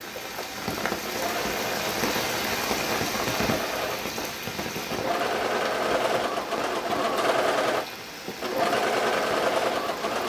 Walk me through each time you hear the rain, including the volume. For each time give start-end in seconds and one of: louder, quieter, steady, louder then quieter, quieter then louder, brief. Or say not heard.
0.0-10.2 quieter.